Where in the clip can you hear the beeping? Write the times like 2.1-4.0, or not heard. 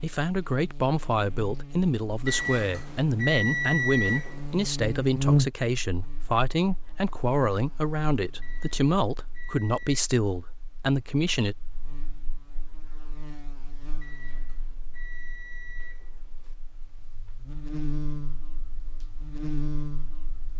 2.2-4.8, 8.4-10.0, 14.0-16.6.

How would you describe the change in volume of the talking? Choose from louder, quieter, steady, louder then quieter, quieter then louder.
steady.